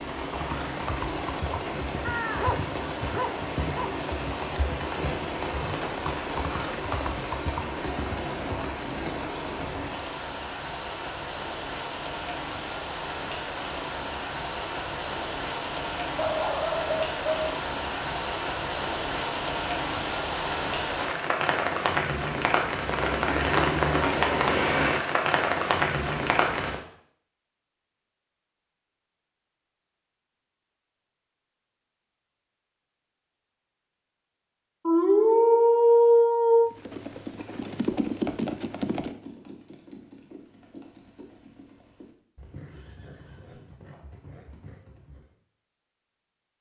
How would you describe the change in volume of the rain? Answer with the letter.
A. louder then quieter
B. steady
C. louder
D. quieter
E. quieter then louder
C.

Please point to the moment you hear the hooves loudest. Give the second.
38 s.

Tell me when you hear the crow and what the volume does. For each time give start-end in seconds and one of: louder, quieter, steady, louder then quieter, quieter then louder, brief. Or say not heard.
not heard.